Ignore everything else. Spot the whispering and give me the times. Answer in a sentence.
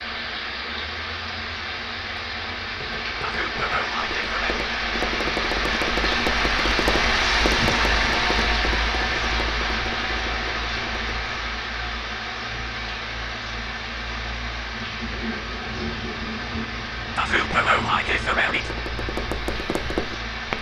You can hear the whispering from 3.2 to 4.6 s and from 17.1 to 18.8 s.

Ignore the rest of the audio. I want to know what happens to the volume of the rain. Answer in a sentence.
The loudness of the rain goes up, then down.